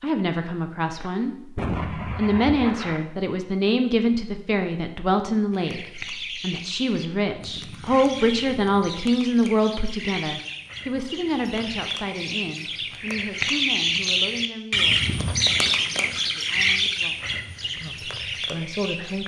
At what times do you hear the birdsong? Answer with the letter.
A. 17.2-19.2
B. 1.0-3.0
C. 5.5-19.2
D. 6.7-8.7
C.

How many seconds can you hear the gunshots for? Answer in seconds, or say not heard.
2 s.